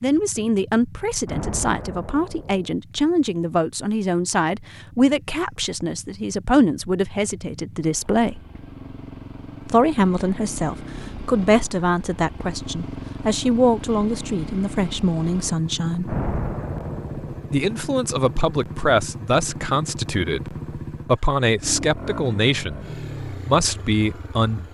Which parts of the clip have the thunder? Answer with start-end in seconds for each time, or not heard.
1.2-2.7, 16.1-17.6.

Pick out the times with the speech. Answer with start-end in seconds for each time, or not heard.
0.0-8.4, 9.7-16.1, 17.5-24.7.